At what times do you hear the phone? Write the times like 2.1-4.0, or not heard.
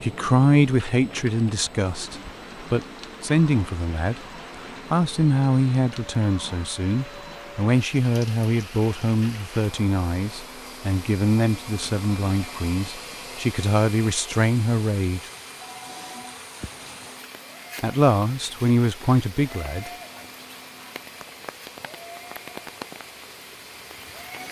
15.6-16.4.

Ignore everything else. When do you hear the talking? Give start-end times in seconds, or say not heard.
0.0-15.2, 17.8-19.9.